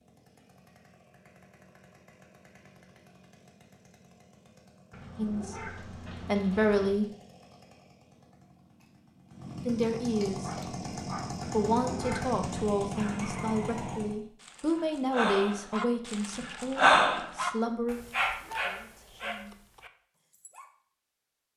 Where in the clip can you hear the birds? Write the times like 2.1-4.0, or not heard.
not heard.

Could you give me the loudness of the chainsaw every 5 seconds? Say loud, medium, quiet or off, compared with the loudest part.
quiet, medium, loud, off, off.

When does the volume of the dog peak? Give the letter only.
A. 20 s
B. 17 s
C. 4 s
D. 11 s
B.